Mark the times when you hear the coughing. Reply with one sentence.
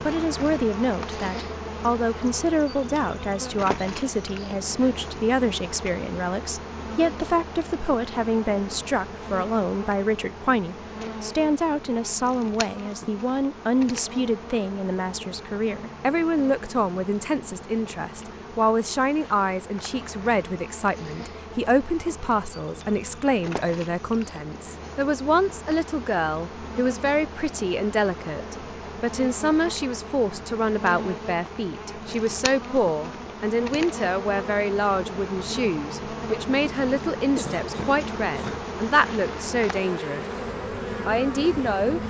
The coughing can be heard from 37.4 to 38.7 s.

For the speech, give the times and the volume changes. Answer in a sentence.
You can hear the speech from 0.0 to 40.2 s, at a steady volume; and briefly from 41.0 to 42.0 s.